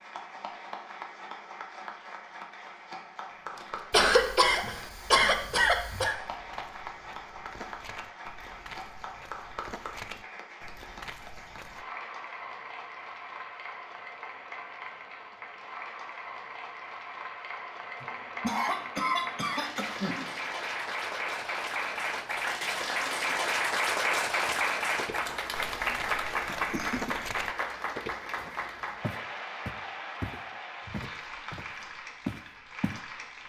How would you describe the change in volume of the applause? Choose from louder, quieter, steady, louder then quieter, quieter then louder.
louder then quieter.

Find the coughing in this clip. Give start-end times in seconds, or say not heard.
3.9-6.2, 18.0-20.3, 26.4-27.1.